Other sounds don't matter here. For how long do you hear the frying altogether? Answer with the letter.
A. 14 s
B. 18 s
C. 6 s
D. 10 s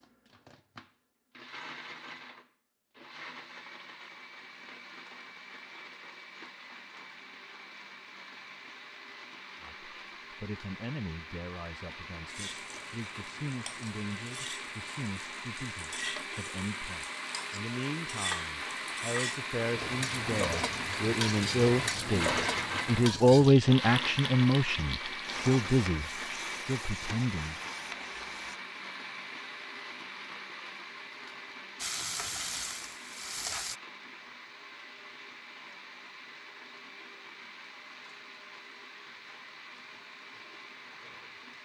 B.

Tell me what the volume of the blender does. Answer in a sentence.
The volume of the blender goes up, then down.